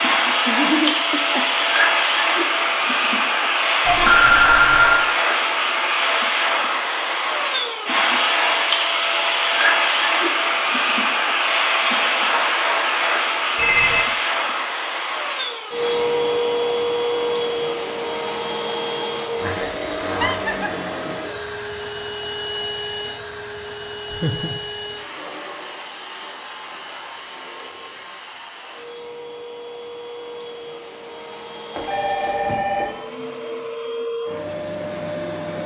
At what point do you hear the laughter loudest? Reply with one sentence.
The loudest moment of the laughter is at 1 second.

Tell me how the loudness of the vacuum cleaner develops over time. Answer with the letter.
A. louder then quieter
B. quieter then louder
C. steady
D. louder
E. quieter
E.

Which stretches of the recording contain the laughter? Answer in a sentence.
You can hear the laughter from 0.5 to 1.6 s, from 20.1 to 20.8 s and from 24.1 to 24.6 s.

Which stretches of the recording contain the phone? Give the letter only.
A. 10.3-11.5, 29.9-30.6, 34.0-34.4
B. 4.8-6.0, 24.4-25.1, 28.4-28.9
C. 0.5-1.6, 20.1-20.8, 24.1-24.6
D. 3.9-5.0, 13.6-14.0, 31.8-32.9
D.